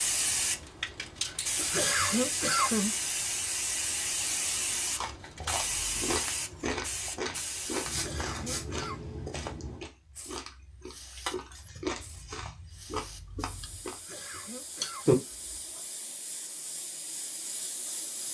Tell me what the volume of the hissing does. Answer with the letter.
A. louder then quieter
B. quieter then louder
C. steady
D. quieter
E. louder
B.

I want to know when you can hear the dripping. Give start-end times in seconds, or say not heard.
not heard.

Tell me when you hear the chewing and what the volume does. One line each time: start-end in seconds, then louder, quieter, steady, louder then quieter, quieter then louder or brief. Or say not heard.
5.0-15.8 quieter then louder.